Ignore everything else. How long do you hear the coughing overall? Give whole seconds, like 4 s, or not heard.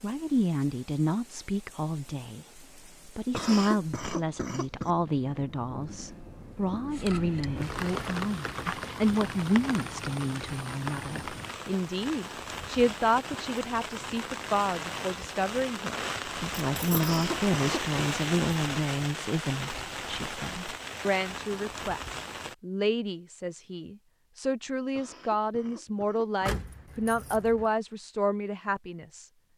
4 s.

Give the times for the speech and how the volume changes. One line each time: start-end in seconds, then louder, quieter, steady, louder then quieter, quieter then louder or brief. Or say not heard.
0.0-29.3 steady.